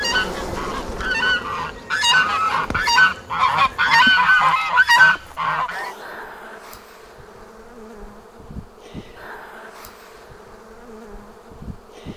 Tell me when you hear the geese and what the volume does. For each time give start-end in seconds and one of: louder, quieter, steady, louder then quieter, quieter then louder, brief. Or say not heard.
0.0-5.9 louder.